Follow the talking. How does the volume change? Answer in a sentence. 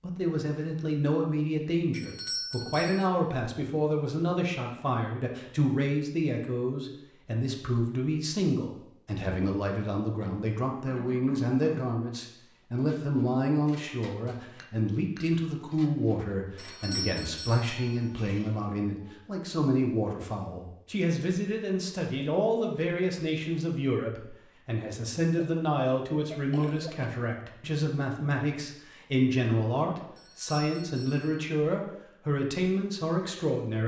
The volume of the talking stays about the same.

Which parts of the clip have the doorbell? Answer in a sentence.
The doorbell can be heard from 1.9 to 3.1 s, from 16.6 to 18.1 s and from 30.1 to 31.4 s.